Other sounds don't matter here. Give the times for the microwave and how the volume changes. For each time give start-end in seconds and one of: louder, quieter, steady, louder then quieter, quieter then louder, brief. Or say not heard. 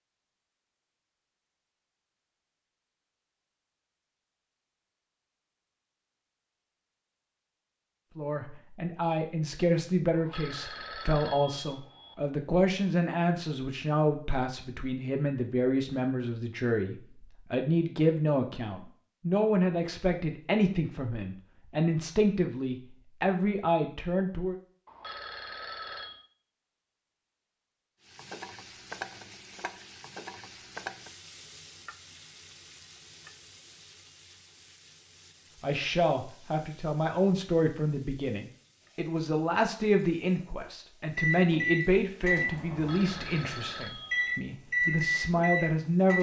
41.1-46.1 quieter then louder.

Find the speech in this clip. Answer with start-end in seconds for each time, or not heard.
8.2-24.6, 35.6-46.1.